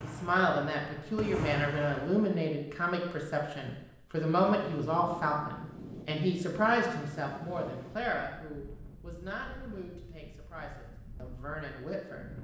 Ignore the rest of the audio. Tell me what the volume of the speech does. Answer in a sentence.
The loudness of the speech goes down.